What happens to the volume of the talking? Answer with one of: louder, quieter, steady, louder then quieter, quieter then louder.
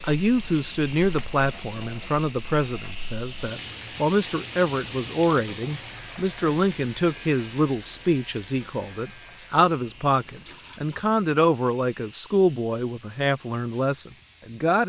steady.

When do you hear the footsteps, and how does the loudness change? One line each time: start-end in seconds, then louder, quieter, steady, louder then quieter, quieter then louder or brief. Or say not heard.
not heard.